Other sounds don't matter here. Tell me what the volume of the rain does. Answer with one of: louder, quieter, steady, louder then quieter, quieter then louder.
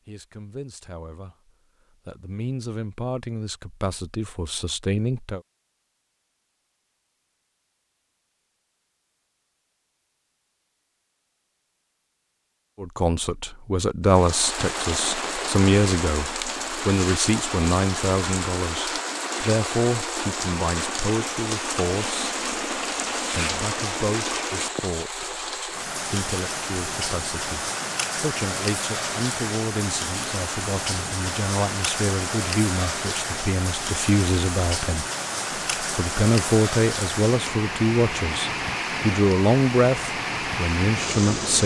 steady.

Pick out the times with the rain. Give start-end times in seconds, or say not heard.
14.1-41.6.